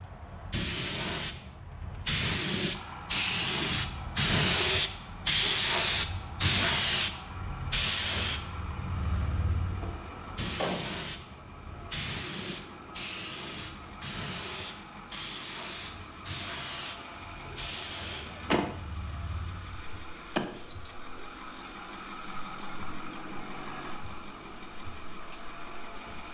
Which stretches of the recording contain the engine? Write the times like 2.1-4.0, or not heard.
2.7-26.2.